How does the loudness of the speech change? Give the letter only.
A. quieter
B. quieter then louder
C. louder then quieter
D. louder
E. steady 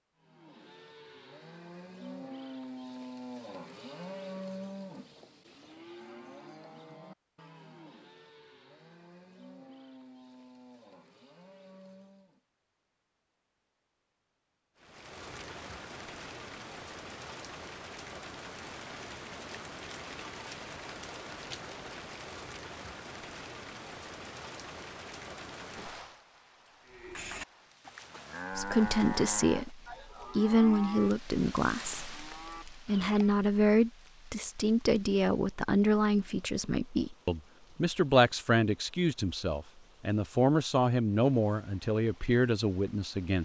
E.